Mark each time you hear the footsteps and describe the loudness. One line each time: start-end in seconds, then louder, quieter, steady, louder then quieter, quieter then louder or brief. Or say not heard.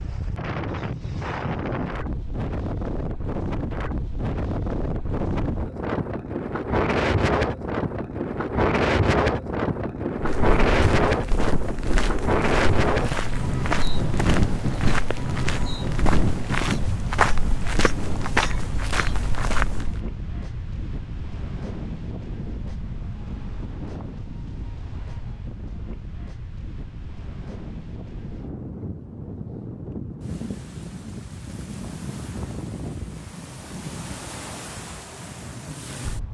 10.2-20.0 louder.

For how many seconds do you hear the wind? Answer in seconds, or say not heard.
36 s.